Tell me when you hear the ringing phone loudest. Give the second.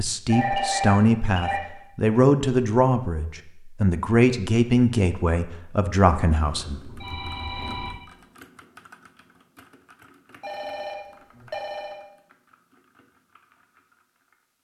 1 s.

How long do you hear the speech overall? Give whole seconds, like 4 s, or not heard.
7 s.